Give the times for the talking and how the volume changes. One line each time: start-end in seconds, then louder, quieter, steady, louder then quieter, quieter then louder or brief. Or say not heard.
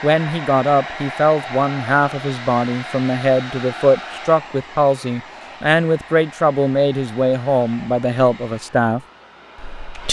0.0-10.0 steady.